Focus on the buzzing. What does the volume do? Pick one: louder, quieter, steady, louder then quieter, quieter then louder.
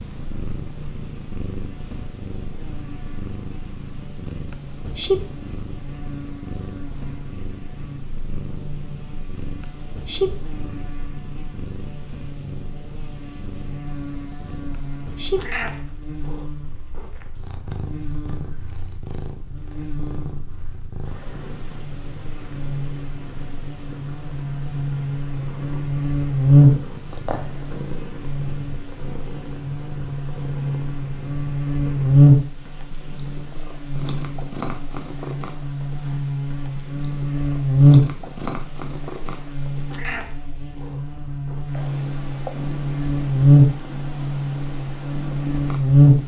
louder.